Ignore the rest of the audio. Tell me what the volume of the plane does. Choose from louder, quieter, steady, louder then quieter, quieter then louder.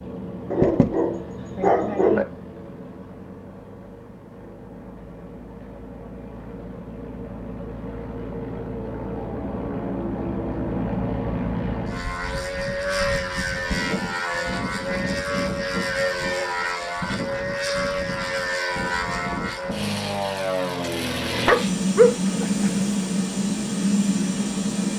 louder.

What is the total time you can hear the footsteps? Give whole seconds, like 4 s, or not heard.
not heard.